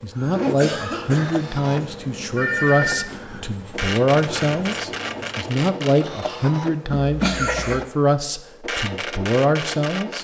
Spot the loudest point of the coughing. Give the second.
7 s.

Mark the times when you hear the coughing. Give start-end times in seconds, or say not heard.
0.6-1.4, 6.9-7.8.